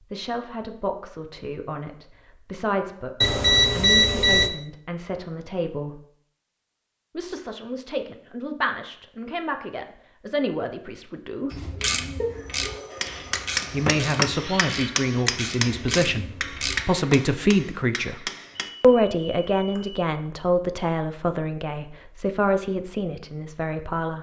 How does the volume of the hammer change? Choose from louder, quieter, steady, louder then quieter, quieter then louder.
quieter.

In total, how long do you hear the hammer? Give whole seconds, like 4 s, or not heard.
6 s.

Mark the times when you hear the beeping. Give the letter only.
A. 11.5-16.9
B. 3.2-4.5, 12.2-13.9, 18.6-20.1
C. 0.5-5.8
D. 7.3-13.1
B.